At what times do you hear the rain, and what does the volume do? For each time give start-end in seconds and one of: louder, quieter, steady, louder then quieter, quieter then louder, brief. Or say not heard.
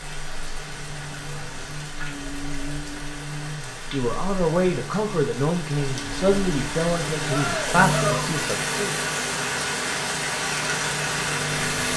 0.0-11.9 louder.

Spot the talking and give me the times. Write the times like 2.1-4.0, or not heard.
3.9-8.9.